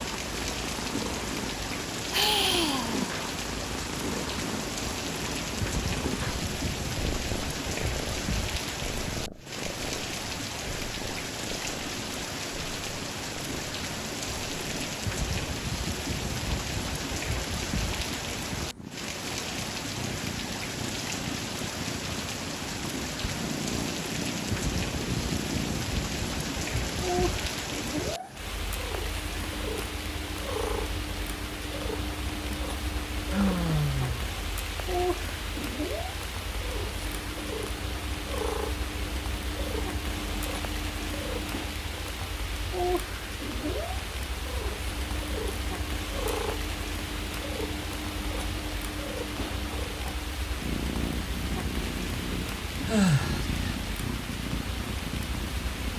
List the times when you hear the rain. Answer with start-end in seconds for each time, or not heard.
0.0-55.9.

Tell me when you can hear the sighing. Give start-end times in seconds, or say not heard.
2.1-3.1, 33.3-34.2, 52.9-53.6.